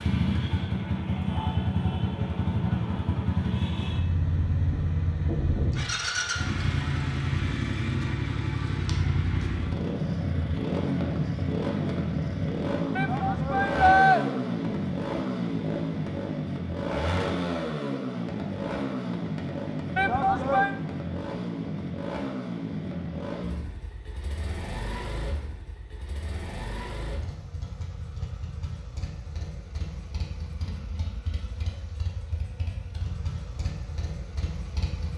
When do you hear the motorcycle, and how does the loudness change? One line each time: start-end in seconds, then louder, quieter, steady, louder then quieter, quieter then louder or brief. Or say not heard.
0.0-35.1 quieter.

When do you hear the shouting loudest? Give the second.
14 s.